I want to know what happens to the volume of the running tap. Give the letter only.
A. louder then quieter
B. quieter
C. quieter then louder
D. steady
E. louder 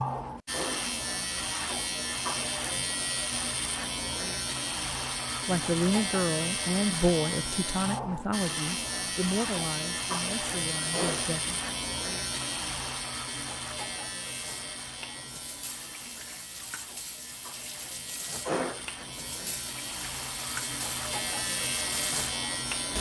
E.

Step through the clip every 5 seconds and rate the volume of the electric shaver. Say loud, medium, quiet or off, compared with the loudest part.
loud, loud, loud, medium, loud.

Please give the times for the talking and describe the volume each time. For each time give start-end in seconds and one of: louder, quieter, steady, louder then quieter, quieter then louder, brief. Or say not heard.
5.5-11.6 quieter.